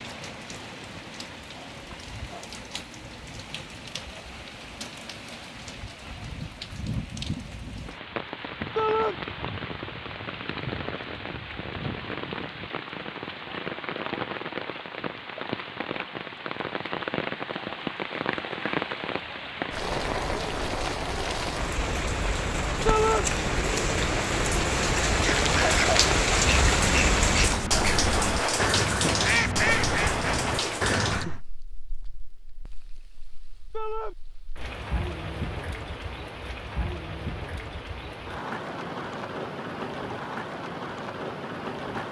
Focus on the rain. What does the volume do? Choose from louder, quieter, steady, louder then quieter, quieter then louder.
louder then quieter.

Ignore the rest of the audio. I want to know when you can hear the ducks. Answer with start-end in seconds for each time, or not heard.
25.1-31.4.